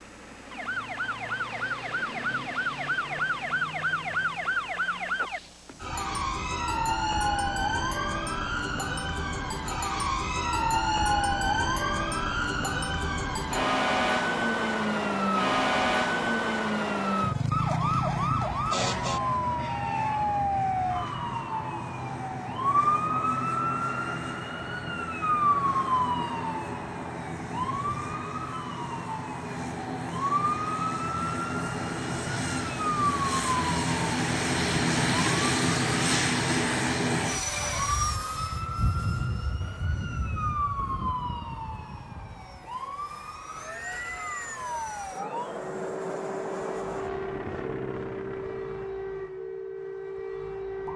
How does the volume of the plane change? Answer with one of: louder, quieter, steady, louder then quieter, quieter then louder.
louder then quieter.